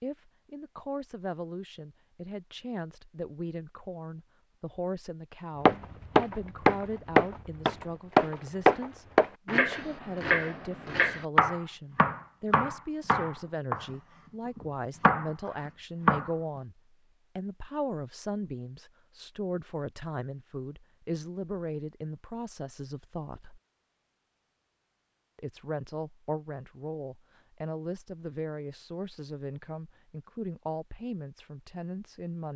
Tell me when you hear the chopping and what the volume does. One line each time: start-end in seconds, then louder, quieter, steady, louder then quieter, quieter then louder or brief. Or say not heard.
5.7-16.3 quieter.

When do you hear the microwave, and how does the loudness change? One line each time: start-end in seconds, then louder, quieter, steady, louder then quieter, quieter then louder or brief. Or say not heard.
not heard.